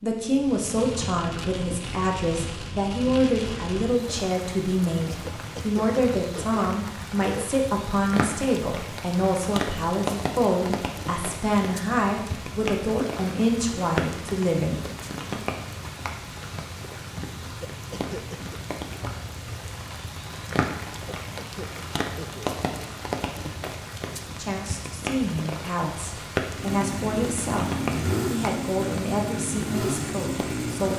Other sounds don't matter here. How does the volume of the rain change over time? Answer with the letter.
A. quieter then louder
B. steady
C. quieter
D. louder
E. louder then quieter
B.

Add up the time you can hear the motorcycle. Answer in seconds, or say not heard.
4 s.